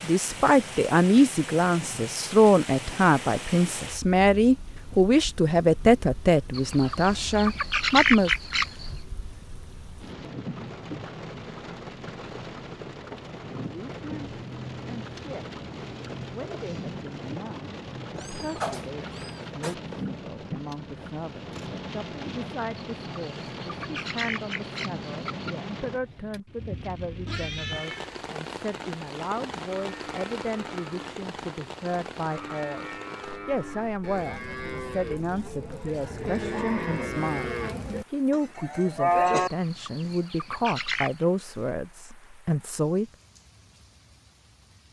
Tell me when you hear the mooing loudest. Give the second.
39 s.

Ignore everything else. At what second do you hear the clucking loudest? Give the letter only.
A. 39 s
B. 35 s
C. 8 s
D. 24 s
C.